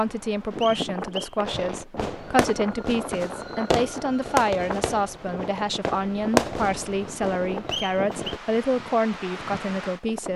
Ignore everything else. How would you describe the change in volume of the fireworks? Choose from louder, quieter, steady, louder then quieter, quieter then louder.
louder then quieter.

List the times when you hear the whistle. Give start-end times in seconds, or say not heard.
0.6-1.4, 7.7-8.3.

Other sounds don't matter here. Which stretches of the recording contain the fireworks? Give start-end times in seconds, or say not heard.
1.4-8.4.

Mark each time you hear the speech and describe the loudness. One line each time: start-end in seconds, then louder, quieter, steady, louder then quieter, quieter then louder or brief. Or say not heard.
0.0-10.3 steady.